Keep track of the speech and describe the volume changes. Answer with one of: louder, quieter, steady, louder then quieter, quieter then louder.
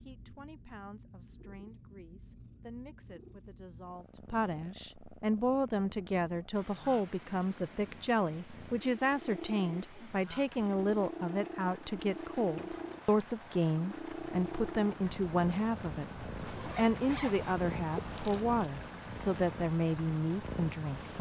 louder.